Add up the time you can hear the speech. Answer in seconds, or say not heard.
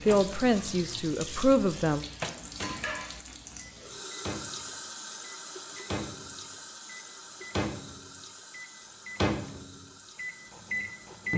2 s.